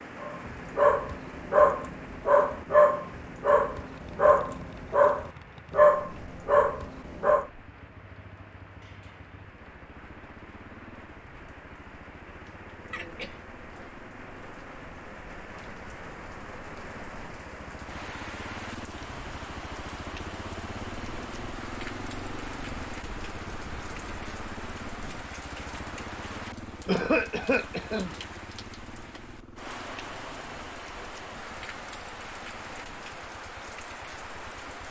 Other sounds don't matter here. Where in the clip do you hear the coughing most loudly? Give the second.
27 s.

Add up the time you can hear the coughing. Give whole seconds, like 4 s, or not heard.
2 s.